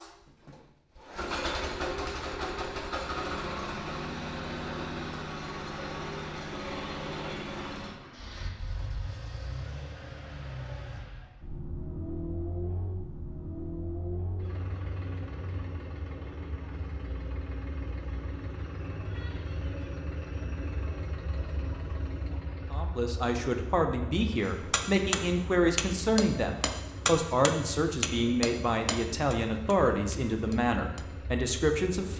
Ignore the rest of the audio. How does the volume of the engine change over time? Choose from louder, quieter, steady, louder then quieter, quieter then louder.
quieter.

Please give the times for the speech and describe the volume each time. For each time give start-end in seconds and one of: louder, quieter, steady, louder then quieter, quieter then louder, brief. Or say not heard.
22.7-32.1 steady.